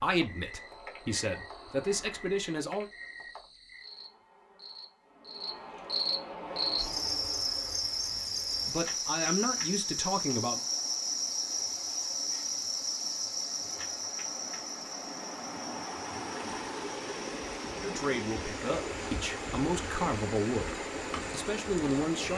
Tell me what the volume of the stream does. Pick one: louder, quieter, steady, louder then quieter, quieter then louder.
louder.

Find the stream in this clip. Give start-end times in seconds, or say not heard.
6.4-22.3.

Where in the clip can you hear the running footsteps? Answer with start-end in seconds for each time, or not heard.
not heard.